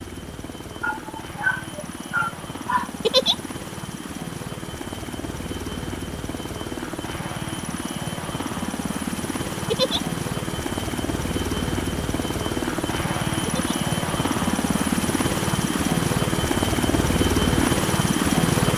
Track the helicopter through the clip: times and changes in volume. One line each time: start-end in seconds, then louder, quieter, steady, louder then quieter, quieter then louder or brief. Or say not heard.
0.0-18.7 louder.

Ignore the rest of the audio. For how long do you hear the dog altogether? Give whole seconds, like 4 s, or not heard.
2 s.